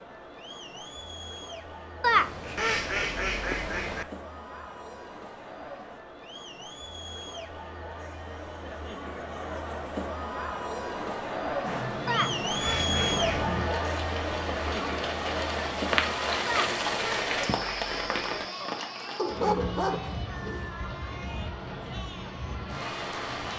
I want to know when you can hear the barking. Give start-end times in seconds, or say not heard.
19.1-20.7.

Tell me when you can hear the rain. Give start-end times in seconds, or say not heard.
11.7-23.5.